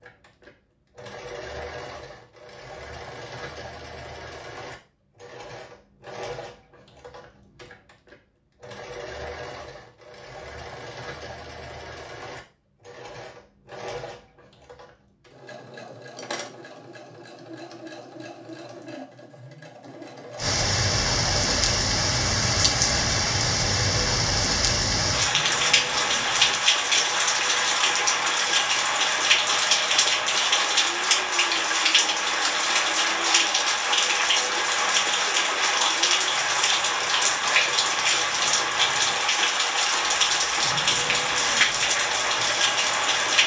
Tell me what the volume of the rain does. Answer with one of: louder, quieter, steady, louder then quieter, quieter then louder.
steady.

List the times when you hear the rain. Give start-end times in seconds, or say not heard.
20.4-43.4.